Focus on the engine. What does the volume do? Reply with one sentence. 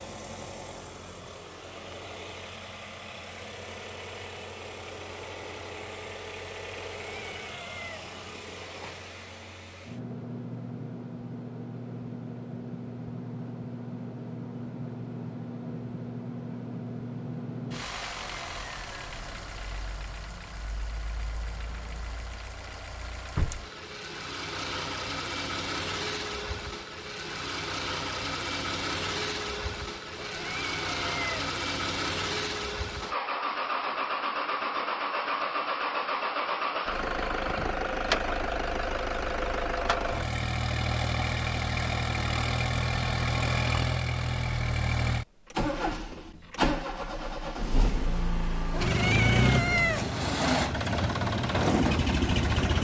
The loudness of the engine goes up.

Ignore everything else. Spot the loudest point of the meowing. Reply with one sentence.
The loudest moment of the meowing is at 50 seconds.